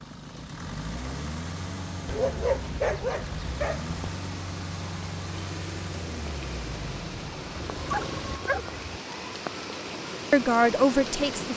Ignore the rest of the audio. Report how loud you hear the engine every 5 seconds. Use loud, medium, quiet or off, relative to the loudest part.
loud, loud, off.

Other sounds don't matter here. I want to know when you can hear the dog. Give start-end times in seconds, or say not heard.
2.0-4.0, 7.7-9.0.